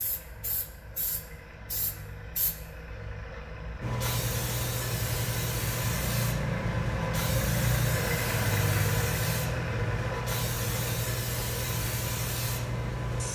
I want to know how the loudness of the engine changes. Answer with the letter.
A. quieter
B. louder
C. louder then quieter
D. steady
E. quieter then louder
C.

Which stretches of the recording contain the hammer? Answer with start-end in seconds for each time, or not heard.
not heard.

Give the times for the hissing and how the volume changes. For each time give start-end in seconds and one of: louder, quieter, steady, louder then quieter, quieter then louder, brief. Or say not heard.
0.0-13.3 louder.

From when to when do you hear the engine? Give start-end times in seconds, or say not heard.
0.0-13.3.